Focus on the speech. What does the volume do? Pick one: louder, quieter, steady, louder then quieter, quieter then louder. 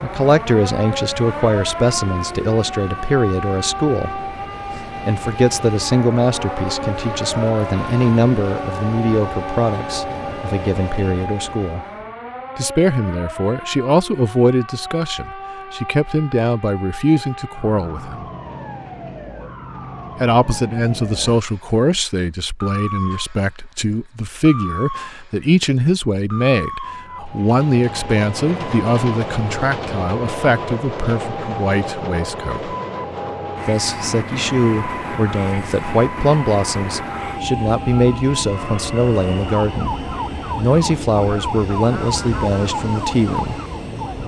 steady.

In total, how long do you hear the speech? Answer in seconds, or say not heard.
40 s.